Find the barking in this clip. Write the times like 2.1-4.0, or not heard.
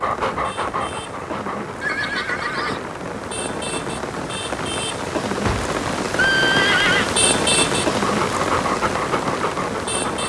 0.0-1.8, 7.9-10.2.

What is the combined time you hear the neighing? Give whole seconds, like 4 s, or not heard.
3 s.